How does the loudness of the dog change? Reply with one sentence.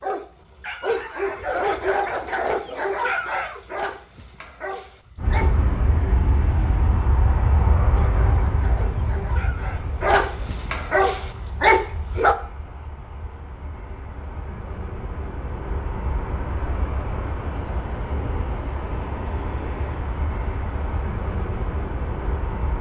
The loudness of the dog goes down, then up.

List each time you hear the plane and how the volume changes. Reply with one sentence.
You can hear the plane from 5.2 to 22.7 s, getting quieter then louder.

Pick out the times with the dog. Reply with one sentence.
The dog can be heard from 0.0 to 5.8 s and from 7.9 to 12.3 s.